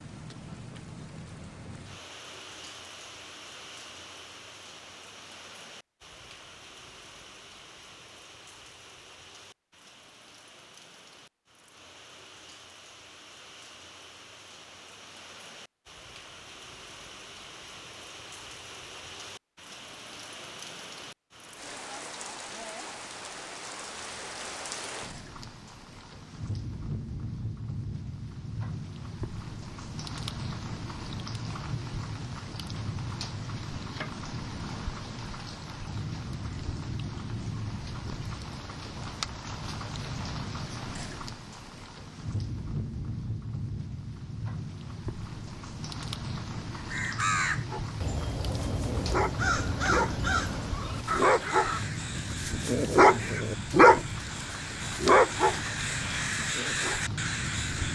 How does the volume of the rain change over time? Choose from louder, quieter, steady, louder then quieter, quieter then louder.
louder.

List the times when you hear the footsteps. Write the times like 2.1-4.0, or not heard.
not heard.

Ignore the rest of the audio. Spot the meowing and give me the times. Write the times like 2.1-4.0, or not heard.
not heard.